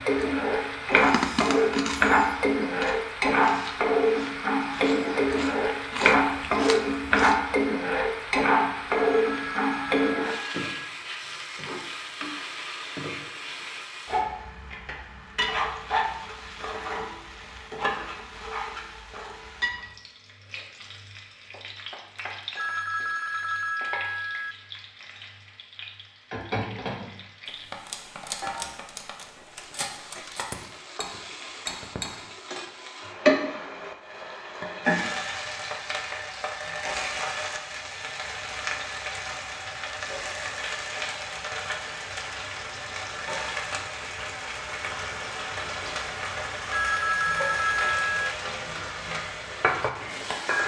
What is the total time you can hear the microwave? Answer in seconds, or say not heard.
not heard.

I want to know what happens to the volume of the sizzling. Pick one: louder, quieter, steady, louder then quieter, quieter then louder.
quieter then louder.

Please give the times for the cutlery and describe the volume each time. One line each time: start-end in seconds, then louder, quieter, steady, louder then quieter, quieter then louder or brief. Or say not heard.
27.4-32.1 quieter then louder.